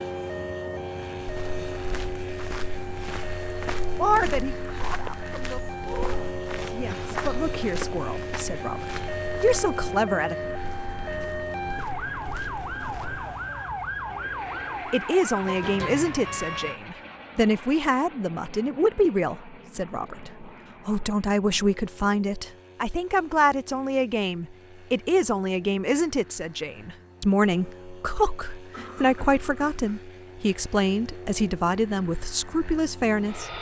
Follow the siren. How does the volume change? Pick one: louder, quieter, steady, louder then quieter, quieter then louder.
louder.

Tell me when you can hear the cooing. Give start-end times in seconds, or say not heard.
not heard.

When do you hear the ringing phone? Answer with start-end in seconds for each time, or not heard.
not heard.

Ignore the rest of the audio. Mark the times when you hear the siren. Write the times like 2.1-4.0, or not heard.
0.0-16.8.